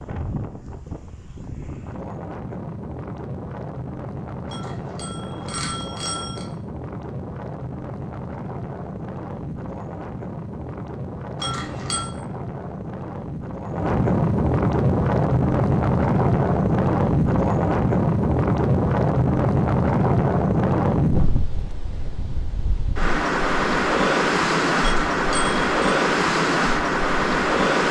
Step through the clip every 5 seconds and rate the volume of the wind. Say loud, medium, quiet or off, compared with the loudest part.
quiet, quiet, medium, loud, loud, loud.